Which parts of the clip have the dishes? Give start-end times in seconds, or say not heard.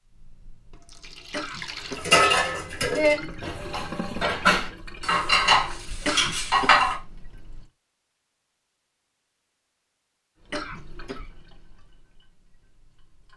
1.9-7.0.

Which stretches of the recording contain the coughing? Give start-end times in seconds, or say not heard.
1.3-2.1, 6.0-6.8, 10.5-11.2.